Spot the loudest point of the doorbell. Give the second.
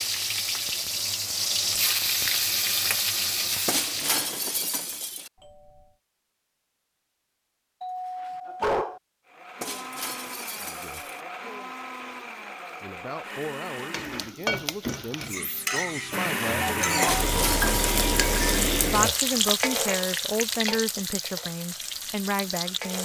9 s.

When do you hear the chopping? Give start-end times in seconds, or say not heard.
not heard.